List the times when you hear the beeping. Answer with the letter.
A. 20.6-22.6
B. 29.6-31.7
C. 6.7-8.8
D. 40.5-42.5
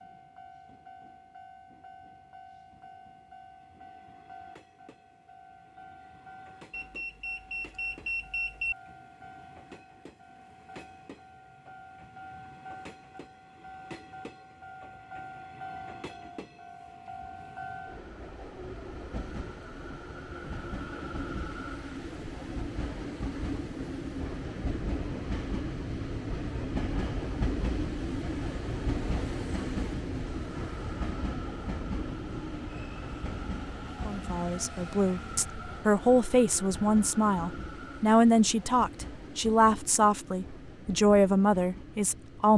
C.